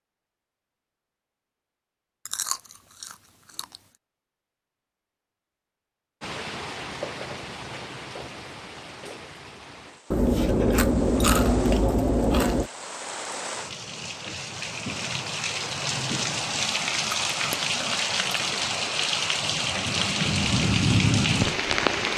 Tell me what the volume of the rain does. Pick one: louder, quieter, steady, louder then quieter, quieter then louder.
quieter then louder.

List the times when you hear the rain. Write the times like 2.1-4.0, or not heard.
6.2-22.1.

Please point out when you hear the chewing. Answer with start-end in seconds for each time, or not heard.
2.2-3.8, 10.1-12.7, 16.6-18.6.